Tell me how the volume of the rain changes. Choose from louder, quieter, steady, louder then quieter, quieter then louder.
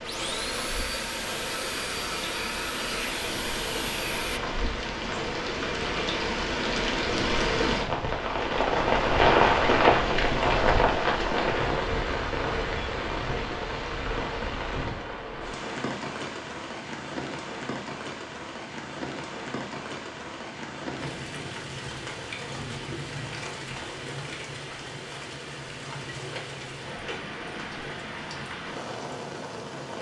louder then quieter.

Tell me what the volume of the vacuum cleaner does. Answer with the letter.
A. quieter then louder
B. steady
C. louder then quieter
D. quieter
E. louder
B.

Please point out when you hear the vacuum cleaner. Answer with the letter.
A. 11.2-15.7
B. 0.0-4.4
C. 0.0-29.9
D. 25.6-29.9
B.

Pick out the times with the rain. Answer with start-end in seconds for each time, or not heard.
0.0-29.9.